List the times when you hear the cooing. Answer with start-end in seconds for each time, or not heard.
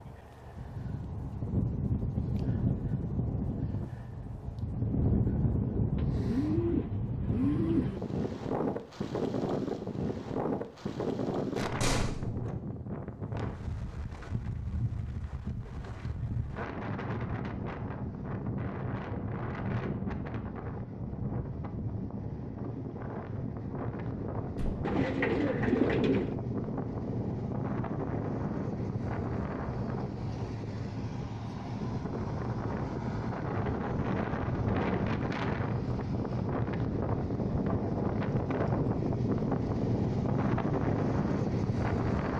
6.0-8.0, 24.8-26.4.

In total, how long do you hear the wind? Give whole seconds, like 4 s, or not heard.
42 s.